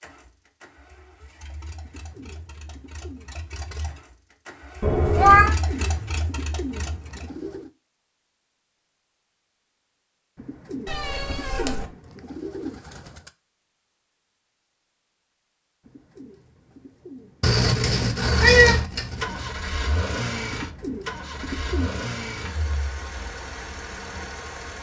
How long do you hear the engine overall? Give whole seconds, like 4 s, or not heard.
14 s.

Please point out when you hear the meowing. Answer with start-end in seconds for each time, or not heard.
4.8-5.5, 10.8-11.8, 17.4-19.5.